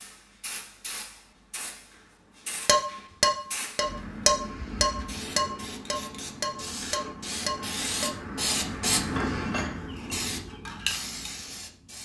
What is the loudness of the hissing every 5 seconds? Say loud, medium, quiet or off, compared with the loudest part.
medium, loud, loud.